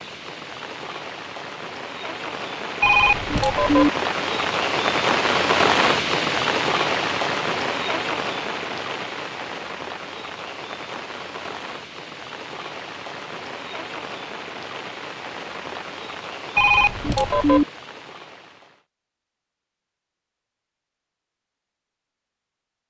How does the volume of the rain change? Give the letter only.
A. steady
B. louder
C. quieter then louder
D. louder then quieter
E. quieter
D.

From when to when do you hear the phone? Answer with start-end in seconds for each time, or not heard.
2.8-3.9, 16.6-17.6.